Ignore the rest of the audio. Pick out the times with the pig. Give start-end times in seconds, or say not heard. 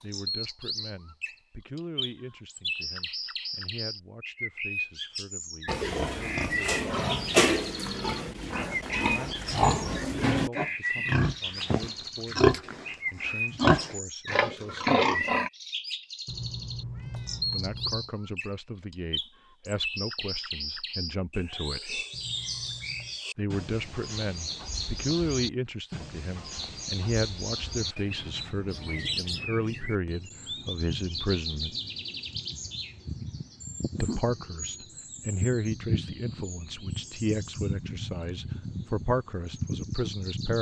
5.7-15.5.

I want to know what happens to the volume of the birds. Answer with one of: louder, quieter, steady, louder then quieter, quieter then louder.
steady.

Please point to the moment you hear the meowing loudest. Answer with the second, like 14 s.
17 s.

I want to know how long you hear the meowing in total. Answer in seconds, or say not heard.
3 s.